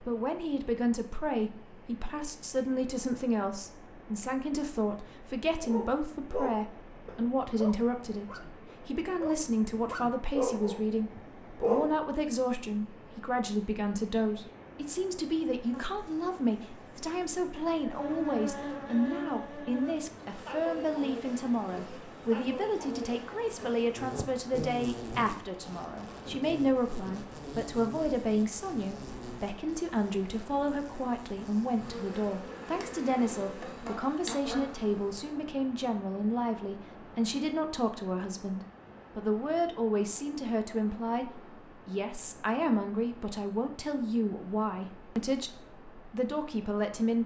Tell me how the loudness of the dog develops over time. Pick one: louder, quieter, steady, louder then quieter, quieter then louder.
quieter then louder.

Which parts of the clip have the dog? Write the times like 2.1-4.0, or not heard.
5.6-11.9.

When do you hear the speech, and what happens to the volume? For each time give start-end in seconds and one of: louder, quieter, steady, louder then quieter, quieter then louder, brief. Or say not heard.
0.0-47.2 steady.